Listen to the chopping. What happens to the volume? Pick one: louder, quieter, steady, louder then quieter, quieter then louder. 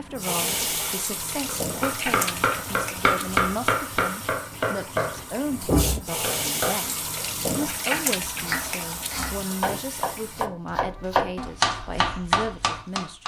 quieter then louder.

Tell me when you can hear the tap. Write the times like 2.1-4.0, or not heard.
0.0-10.4.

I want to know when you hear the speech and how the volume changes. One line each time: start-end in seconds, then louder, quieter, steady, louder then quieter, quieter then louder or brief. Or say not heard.
0.0-13.2 steady.